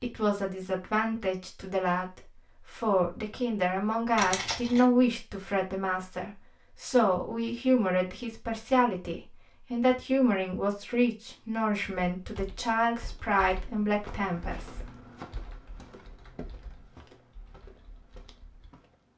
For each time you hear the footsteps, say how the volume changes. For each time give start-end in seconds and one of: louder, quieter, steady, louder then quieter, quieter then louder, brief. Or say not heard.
14.0-19.1 quieter.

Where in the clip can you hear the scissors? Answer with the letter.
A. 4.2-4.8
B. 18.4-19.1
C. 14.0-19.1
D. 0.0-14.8
A.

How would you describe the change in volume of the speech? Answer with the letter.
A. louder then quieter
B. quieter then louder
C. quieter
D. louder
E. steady
E.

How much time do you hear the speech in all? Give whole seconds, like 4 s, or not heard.
15 s.